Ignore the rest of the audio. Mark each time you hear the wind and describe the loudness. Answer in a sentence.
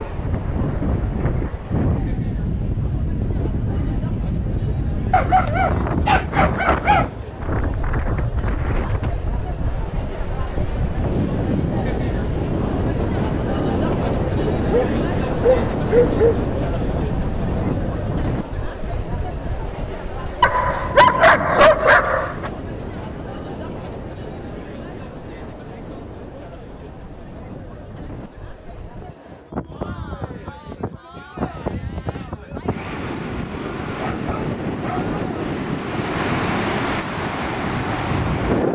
You can hear the wind from 0.0 to 38.7 s, getting quieter then louder.